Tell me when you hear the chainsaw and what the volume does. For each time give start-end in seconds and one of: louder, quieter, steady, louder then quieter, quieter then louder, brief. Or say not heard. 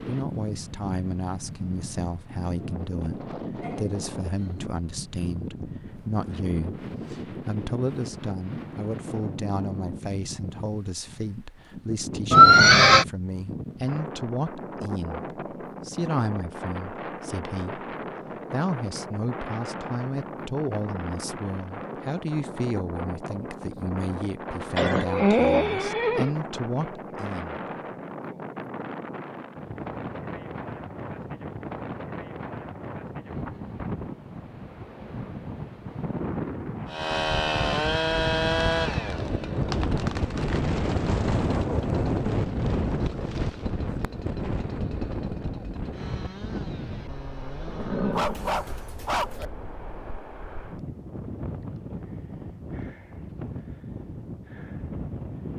36.9-48.2 quieter.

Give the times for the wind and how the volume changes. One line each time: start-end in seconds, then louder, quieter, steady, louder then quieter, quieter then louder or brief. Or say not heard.
0.0-55.5 louder then quieter.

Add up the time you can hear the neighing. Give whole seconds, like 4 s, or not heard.
4 s.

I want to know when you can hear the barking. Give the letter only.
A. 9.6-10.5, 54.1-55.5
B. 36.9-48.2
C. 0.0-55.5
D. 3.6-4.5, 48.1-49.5
D.